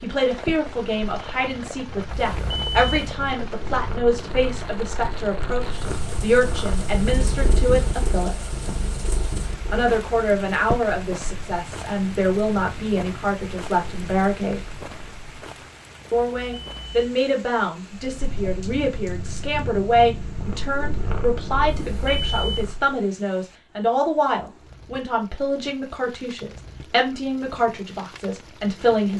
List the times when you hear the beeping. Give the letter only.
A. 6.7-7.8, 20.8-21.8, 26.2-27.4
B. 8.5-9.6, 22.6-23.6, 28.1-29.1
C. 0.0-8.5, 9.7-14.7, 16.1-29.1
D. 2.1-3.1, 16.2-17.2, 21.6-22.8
D.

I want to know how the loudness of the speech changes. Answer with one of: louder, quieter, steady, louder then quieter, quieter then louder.
steady.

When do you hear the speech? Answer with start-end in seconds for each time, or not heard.
0.0-8.5, 9.7-14.7, 16.1-29.1.